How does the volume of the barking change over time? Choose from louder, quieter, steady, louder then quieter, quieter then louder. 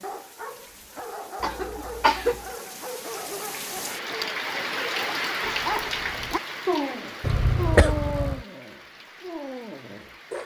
louder then quieter.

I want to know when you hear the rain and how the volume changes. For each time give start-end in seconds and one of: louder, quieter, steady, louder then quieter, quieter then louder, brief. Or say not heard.
0.0-10.4 louder then quieter.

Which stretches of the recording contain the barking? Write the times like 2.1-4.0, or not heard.
0.0-10.4.